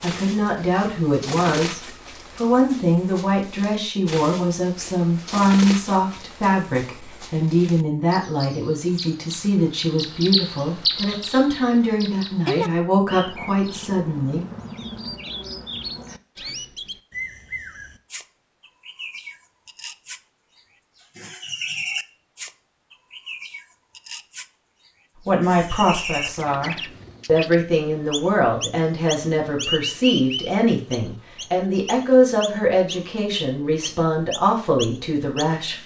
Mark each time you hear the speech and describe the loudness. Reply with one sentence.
You can hear the speech from 0.0 to 14.4 s, at a steady volume; and from 25.2 to 35.8 s, at a steady volume.